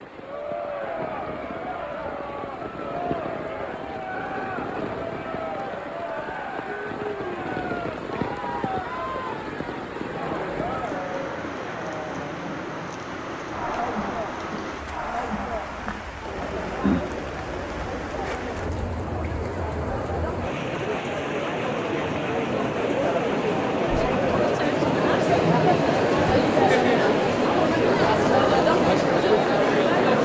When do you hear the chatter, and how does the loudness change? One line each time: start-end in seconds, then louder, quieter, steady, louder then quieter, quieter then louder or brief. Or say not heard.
0.1-30.2 louder.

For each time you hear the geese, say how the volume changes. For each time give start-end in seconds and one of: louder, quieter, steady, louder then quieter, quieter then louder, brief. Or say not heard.
not heard.